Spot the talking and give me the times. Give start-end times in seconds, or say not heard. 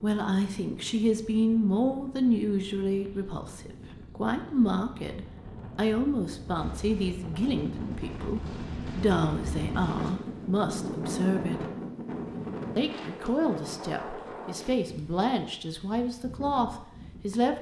0.0-11.7, 12.8-17.5.